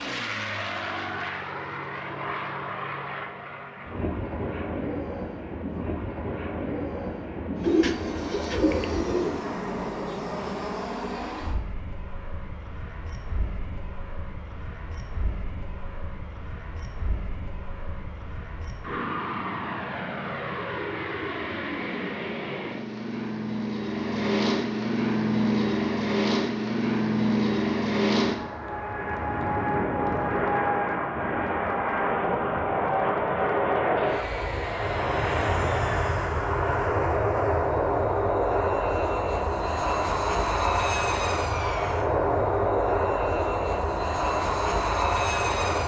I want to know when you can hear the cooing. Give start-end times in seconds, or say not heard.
7.6-9.4.